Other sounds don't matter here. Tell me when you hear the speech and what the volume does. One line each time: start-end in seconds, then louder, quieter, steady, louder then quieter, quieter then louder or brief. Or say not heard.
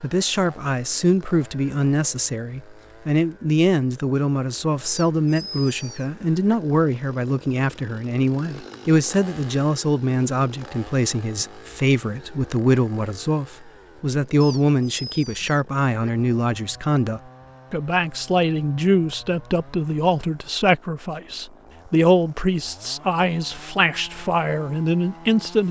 0.0-25.6 steady.